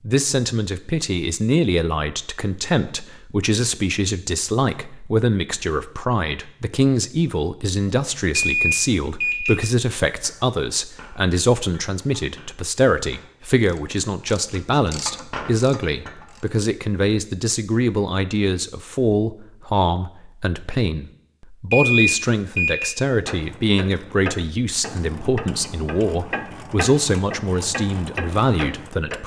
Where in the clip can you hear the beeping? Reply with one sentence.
You can hear the beeping from 8.3 to 9.6 s and from 21.7 to 22.9 s.